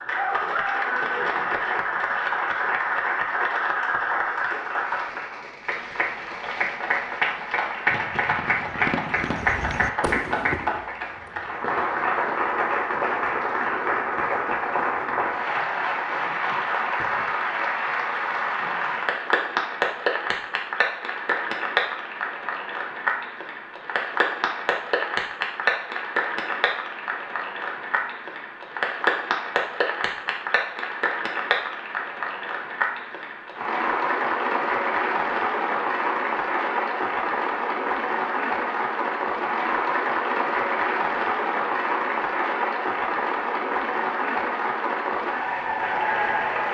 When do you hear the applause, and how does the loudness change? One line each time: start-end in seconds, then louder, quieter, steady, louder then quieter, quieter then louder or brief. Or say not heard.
0.0-46.6 steady.